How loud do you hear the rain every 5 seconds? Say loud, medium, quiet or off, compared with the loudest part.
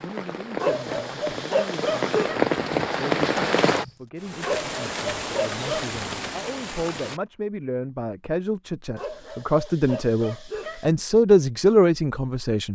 loud, medium, off.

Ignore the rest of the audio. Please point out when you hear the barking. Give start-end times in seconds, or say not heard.
0.6-2.4, 4.4-6.0, 8.9-10.8.